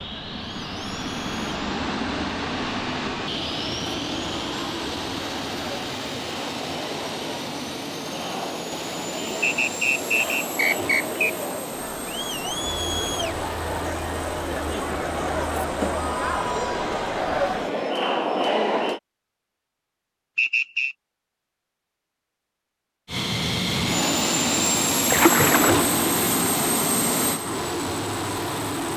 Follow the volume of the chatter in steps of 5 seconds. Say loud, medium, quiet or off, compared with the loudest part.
quiet, medium, medium, loud, off, off.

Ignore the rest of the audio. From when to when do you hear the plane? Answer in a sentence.
The plane can be heard from 0.0 to 17.9 s and from 23.1 to 28.9 s.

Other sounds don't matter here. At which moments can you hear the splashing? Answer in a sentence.
You can hear the splashing from 25.1 to 25.9 s.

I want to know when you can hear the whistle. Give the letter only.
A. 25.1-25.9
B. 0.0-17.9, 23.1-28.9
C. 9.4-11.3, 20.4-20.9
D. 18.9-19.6
C.